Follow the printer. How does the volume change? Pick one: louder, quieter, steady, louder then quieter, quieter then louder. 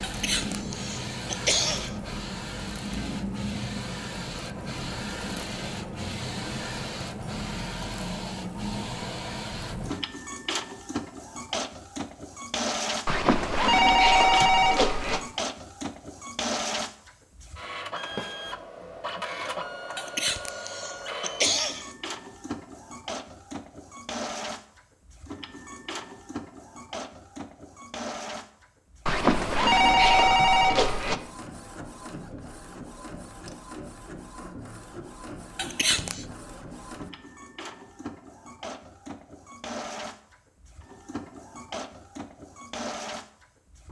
quieter.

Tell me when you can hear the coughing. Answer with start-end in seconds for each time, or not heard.
0.0-1.9, 19.9-21.9, 35.5-36.2.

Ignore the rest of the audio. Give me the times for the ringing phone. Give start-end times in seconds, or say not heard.
13.1-15.2, 29.1-31.2.